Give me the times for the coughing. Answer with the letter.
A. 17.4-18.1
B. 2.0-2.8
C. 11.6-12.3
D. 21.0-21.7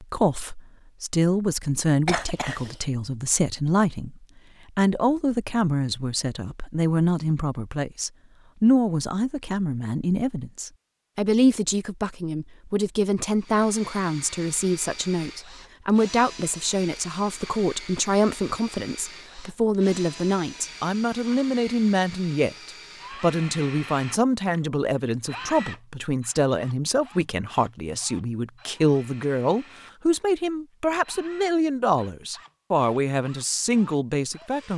B.